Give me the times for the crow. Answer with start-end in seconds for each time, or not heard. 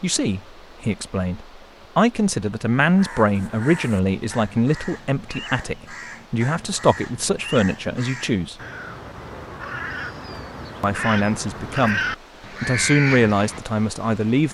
2.9-13.6.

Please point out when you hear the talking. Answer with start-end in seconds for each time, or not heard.
0.0-8.6, 10.8-12.0, 12.6-14.4.